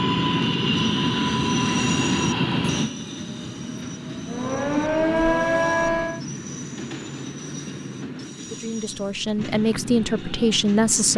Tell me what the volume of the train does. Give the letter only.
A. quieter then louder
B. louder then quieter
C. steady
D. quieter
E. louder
D.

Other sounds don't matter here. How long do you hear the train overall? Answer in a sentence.
You can hear the train for 11 seconds altogether.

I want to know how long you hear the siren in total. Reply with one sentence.
You can hear the siren for 2 seconds altogether.